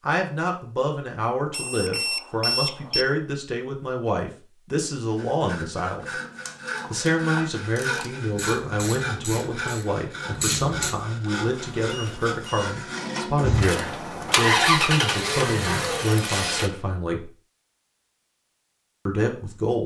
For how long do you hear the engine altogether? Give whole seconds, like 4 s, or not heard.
3 s.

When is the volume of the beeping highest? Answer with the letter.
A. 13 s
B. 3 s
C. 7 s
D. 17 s
B.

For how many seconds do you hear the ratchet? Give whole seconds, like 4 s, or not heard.
5 s.